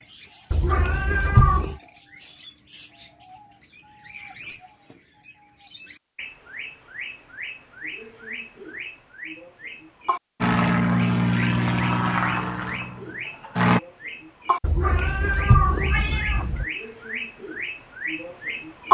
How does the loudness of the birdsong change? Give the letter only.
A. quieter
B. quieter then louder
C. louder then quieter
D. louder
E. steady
D.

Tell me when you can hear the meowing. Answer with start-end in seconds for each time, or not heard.
0.5-1.8, 14.6-16.6.